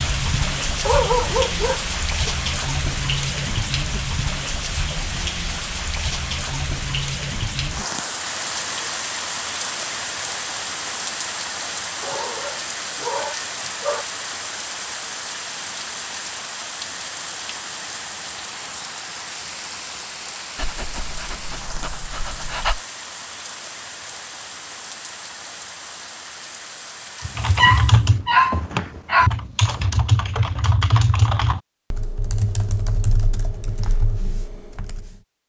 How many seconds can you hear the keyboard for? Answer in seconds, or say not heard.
8 s.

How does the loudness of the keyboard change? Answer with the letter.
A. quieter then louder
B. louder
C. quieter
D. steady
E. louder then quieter
C.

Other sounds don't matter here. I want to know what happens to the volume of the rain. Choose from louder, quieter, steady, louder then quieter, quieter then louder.
quieter.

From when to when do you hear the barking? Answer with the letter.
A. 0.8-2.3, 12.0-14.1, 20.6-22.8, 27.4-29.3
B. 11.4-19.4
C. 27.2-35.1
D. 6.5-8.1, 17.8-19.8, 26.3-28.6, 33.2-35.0
A.